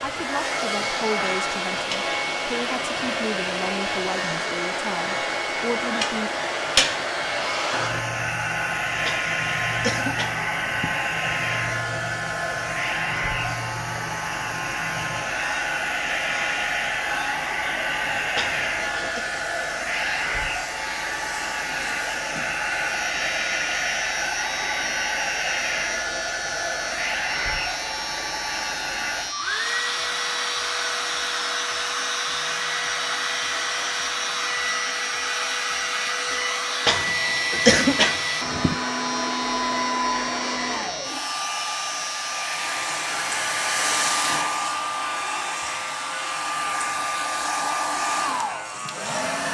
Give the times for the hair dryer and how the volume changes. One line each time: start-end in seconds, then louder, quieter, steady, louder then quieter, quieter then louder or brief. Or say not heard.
0.0-49.5 steady.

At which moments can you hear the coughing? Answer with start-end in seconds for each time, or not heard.
9.1-10.9, 18.4-19.2, 36.9-38.8.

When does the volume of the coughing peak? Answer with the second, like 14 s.
38 s.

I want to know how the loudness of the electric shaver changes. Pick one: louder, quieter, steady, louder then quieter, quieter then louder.
steady.